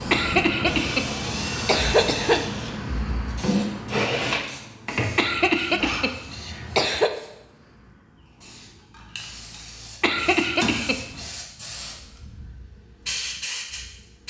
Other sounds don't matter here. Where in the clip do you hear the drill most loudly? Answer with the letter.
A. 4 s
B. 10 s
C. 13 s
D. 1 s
A.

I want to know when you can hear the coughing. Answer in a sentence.
You can hear the coughing from 0.1 to 2.4 s, from 5.2 to 7.1 s and from 10.0 to 11.3 s.